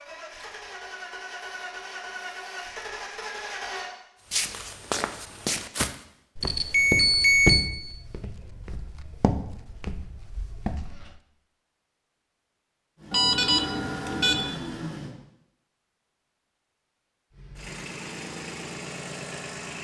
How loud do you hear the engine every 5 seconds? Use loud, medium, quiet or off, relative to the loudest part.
loud, off, loud, loud.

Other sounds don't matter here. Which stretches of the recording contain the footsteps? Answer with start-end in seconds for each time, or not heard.
4.3-11.2.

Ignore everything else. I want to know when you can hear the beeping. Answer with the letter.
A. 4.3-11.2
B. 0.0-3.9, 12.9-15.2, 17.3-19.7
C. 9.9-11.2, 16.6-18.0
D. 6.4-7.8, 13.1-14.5
D.